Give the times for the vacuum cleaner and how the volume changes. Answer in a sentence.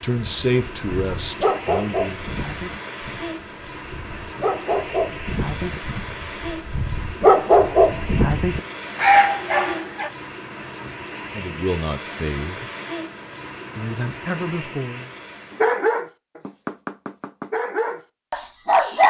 The vacuum cleaner can't be heard in this clip.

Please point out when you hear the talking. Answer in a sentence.
The talking can be heard from 0.0 to 2.2 s, from 11.3 to 12.7 s and from 13.8 to 15.1 s.